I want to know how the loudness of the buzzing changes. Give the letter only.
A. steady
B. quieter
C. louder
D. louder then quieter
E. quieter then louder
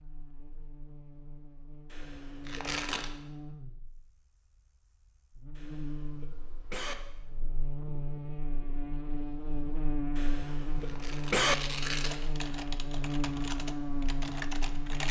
C.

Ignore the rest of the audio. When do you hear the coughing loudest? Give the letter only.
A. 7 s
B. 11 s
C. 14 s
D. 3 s
B.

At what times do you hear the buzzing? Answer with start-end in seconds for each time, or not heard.
0.0-15.0.